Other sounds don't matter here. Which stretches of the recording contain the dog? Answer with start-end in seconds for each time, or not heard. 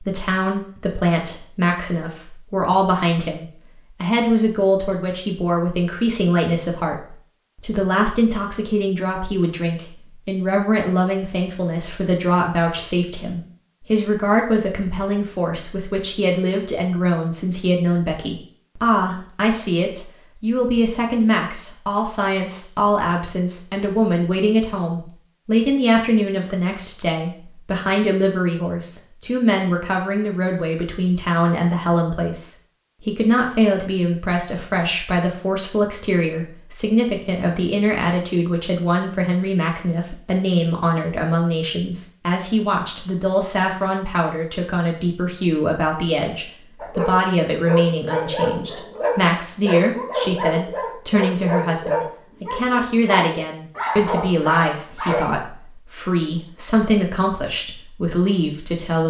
46.8-55.3.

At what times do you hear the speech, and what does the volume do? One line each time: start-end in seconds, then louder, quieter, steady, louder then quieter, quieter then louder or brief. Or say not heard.
0.0-59.0 steady.